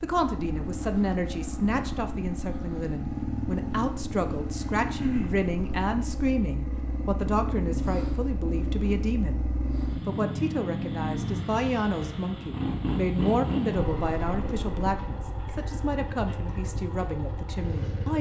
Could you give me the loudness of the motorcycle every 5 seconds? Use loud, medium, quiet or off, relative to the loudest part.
loud, loud, loud, medium.